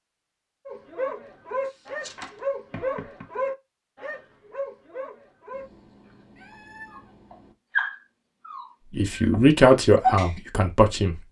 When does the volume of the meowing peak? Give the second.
7 s.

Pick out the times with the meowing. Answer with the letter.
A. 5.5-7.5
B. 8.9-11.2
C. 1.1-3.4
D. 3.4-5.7
A.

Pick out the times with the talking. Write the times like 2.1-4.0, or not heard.
8.9-11.2.